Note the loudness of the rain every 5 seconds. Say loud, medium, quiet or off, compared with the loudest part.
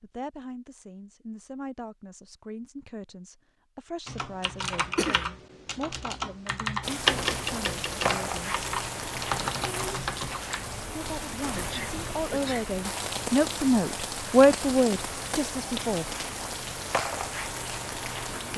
off, loud, loud, loud.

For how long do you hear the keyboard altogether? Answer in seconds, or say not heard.
7 s.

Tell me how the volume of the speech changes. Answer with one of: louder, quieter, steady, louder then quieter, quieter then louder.
louder.